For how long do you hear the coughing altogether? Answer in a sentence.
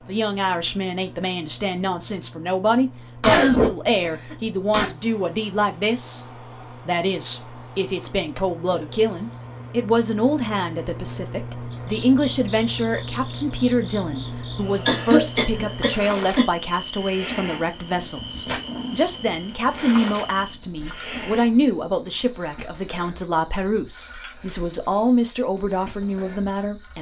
The coughing can be heard for 3 seconds in total.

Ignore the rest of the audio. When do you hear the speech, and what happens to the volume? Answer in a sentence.
You can hear the speech from 0.1 to 26.9 s, at a steady volume.